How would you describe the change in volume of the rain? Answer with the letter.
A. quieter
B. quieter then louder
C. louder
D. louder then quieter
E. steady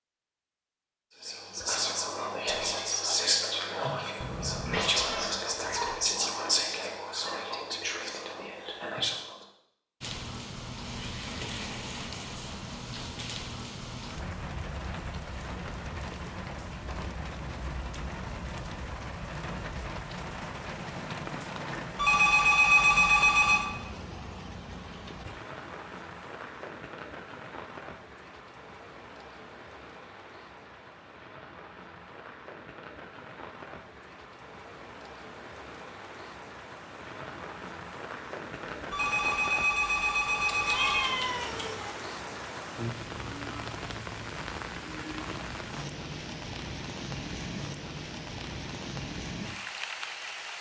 B.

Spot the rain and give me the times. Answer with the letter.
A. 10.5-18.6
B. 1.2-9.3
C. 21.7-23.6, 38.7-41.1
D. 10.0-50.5
D.